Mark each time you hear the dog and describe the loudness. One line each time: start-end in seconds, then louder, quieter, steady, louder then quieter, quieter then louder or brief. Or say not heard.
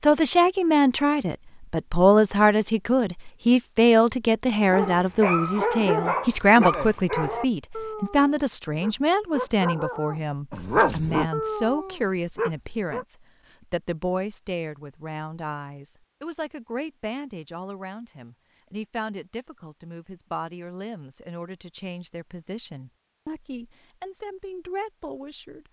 4.6-13.1 quieter then louder.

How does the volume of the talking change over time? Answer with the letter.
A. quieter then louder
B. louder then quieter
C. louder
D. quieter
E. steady
D.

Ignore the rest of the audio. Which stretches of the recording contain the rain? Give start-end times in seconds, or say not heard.
not heard.